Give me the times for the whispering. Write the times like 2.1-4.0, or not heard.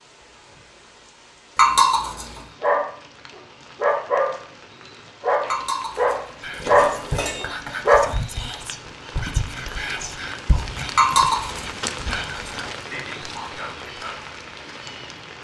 6.4-14.2.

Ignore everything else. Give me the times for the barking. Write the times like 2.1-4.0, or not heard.
2.6-8.1.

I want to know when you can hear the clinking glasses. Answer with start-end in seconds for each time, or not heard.
1.6-2.4, 5.5-7.5, 10.9-11.7.